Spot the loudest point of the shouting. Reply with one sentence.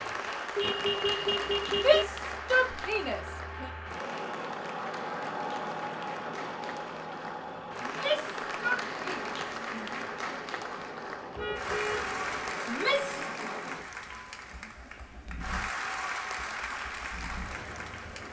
The volume of the shouting peaks at 2 seconds.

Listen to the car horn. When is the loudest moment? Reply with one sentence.
The loudest moment of the car horn is at 1 second.